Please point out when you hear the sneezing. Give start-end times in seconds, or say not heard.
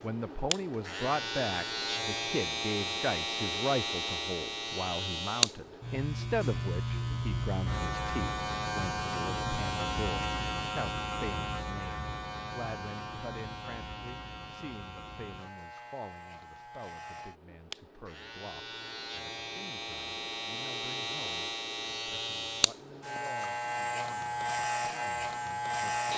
not heard.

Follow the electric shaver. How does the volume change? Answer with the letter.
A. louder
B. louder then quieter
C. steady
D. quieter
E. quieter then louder
E.